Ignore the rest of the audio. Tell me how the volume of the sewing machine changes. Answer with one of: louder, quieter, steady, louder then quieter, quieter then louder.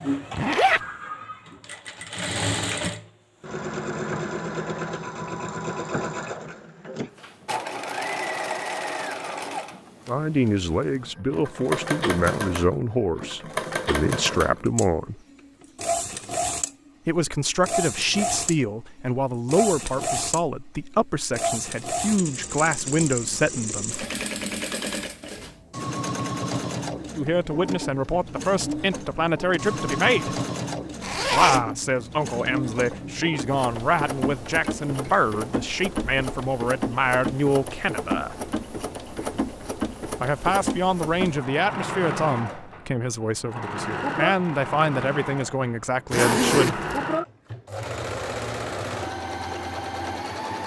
steady.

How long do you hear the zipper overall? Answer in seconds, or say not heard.
2 s.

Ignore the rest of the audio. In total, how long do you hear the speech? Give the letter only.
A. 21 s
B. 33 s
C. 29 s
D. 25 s
C.